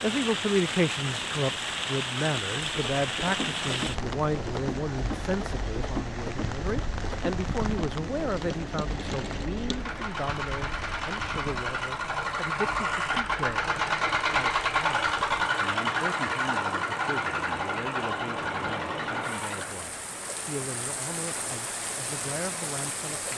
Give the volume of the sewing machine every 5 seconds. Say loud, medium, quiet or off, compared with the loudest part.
medium, medium, loud, loud, off.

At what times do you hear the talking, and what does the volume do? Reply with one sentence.
You can hear the talking from 0.0 to 23.3 s, getting quieter.